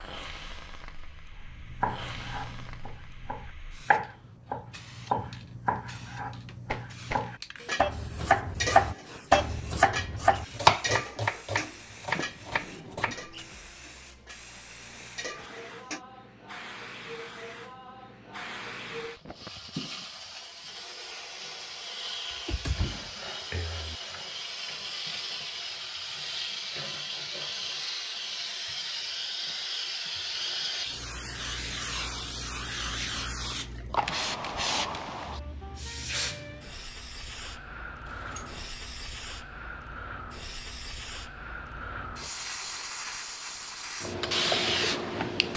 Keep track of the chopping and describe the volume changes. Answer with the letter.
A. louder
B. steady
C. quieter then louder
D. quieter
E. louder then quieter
A.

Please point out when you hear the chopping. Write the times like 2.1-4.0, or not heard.
1.5-13.2.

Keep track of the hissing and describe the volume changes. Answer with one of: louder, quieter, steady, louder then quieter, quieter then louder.
louder.